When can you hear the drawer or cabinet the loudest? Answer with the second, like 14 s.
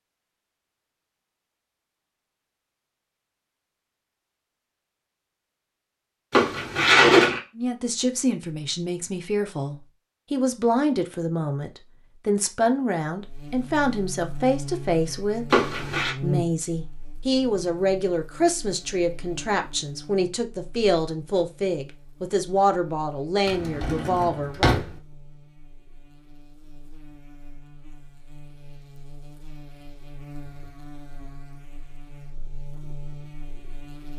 7 s.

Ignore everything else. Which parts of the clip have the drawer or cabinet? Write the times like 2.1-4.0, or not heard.
6.3-7.4, 15.5-16.1, 23.4-24.9.